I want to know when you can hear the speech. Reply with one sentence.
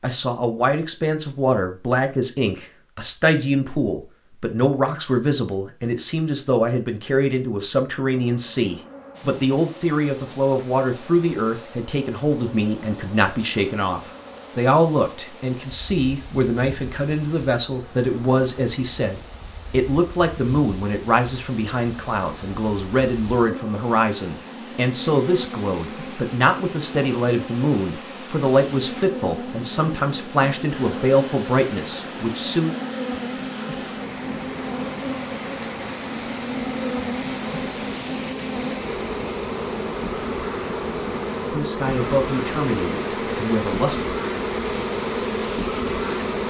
You can hear the speech from 0.0 to 32.7 s and from 41.5 to 44.1 s.